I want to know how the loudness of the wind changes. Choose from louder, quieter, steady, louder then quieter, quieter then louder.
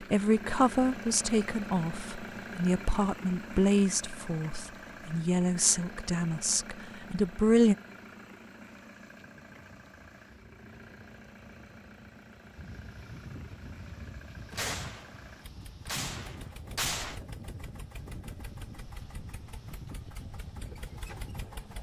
louder.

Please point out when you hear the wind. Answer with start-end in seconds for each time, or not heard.
9.2-21.7.